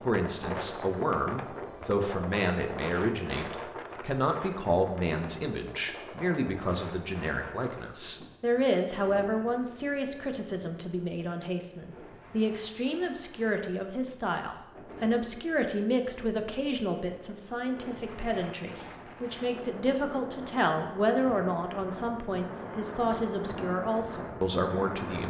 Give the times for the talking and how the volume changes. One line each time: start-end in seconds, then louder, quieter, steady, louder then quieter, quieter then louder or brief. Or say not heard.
0.0-25.2 steady.